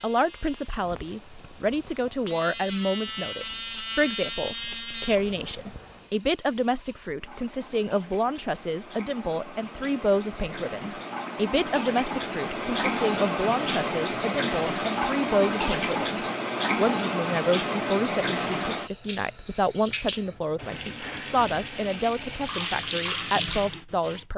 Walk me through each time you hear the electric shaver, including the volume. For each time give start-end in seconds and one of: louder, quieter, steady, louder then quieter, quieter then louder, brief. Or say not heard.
0.0-6.0 louder.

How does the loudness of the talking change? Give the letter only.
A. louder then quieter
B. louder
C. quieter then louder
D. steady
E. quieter
D.